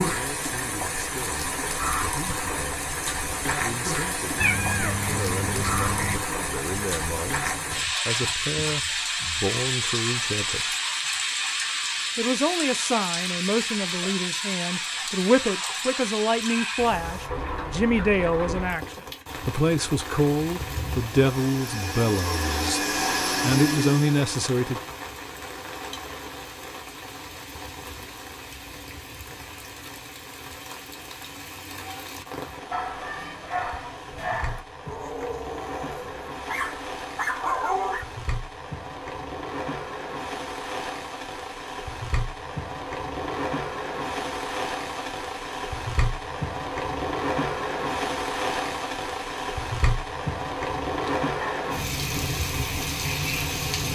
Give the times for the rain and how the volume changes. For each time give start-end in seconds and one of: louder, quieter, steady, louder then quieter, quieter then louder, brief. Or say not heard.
0.0-53.9 quieter then louder.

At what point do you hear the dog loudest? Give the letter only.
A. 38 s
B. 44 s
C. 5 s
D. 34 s
A.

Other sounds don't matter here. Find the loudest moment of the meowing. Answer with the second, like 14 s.
5 s.